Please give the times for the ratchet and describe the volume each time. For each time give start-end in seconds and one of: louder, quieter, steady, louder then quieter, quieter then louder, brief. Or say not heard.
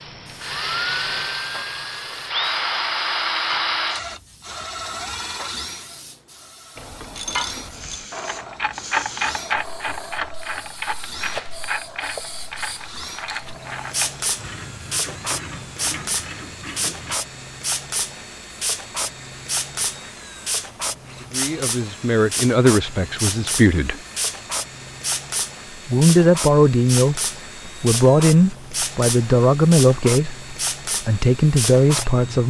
6.8-17.2 quieter.